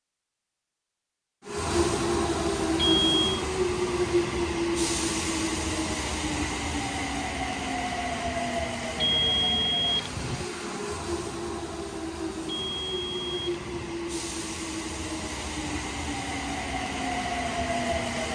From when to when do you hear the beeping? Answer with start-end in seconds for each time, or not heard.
2.8-3.5, 8.9-10.4, 12.4-13.9.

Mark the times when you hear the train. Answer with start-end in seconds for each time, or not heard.
1.4-18.2.